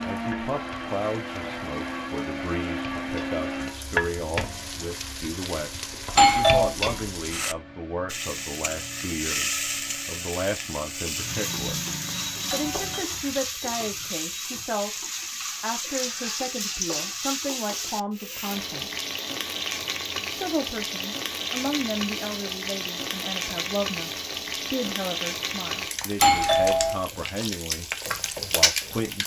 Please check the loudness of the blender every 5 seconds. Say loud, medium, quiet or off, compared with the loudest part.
loud, quiet, quiet, off, off, off.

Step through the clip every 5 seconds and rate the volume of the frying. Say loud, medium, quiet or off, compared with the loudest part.
medium, loud, loud, loud, loud, loud.